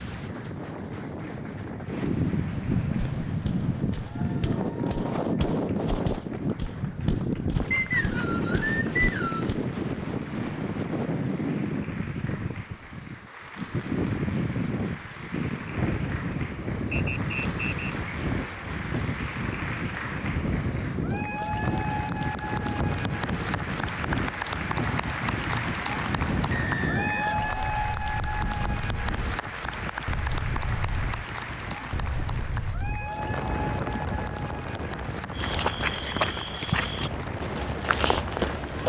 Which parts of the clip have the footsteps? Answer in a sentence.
You can hear the footsteps from 3.0 to 9.8 s and from 35.4 to 38.8 s.